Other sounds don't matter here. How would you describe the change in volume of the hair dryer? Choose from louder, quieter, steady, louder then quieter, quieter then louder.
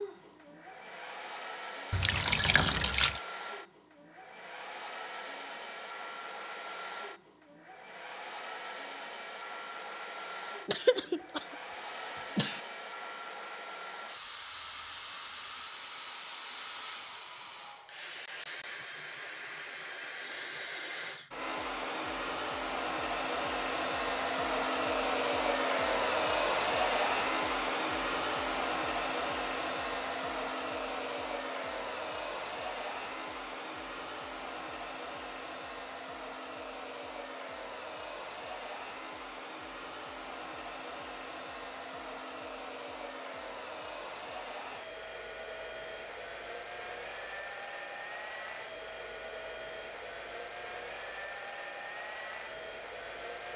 louder then quieter.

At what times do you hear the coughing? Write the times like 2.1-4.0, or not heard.
10.7-12.7.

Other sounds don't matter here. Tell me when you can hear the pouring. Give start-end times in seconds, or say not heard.
1.9-3.2.